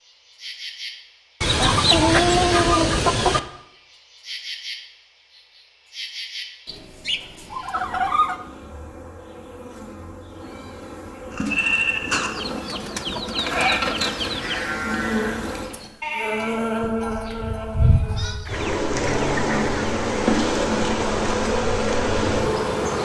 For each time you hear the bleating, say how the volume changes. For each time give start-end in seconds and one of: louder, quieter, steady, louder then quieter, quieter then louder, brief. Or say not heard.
11.3-18.4 quieter.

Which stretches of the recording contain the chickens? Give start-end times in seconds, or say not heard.
1.4-3.4, 6.7-8.4, 12.1-14.7, 18.4-20.2.